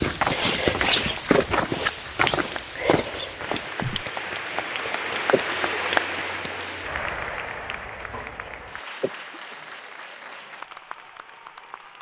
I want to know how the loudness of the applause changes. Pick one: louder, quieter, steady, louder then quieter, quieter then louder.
louder then quieter.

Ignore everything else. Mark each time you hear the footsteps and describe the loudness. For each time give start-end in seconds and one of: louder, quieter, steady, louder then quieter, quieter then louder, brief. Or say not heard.
0.0-4.0 quieter.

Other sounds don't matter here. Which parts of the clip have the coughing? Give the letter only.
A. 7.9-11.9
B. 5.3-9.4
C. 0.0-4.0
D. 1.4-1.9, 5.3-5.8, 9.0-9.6
D.